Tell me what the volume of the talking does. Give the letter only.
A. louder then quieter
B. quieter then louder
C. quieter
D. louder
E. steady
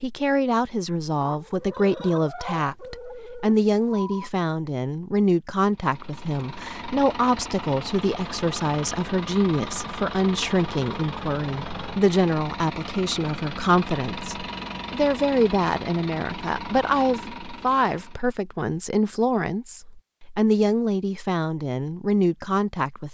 E.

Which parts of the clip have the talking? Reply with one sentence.
You can hear the talking from 0.0 to 23.0 s.